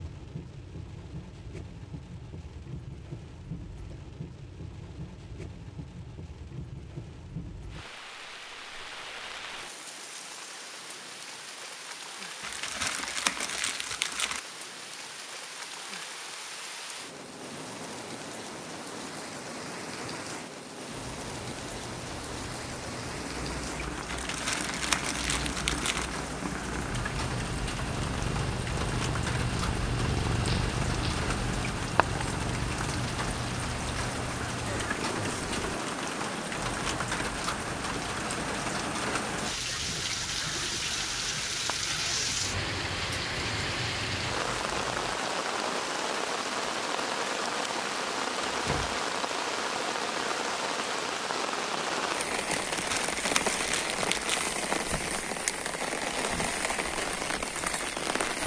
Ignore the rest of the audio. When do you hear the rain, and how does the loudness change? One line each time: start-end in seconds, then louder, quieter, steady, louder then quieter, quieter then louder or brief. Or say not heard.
0.0-58.4 louder.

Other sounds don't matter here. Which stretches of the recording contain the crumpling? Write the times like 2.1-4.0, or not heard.
12.4-14.4, 24.1-26.1, 52.5-54.5.